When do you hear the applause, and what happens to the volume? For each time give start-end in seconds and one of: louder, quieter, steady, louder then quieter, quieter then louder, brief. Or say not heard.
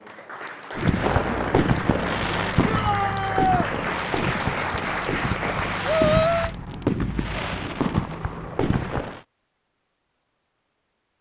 0.0-6.5 louder.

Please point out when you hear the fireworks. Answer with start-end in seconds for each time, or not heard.
0.8-9.2.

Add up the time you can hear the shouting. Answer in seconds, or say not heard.
2 s.